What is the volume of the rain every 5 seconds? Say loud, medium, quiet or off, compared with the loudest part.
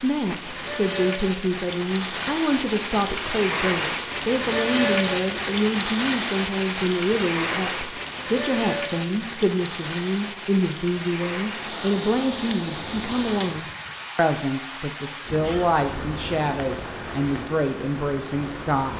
loud, loud, medium, medium.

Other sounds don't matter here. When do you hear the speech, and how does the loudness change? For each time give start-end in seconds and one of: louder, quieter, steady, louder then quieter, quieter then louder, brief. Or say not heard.
0.0-18.9 steady.